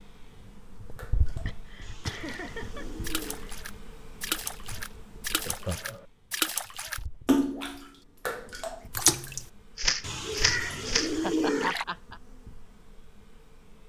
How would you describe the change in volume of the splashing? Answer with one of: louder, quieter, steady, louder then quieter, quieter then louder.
louder.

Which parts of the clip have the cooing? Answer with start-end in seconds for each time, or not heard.
1.8-3.5, 10.0-11.8.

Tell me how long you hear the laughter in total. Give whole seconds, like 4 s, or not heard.
3 s.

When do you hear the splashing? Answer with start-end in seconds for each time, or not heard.
0.9-11.8.